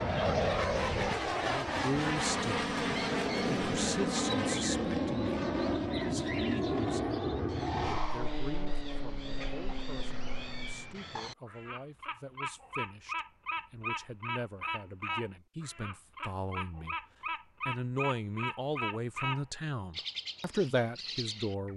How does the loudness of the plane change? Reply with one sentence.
The loudness of the plane goes down.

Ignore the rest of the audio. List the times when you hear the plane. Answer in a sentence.
The plane can be heard from 0.0 to 10.9 s.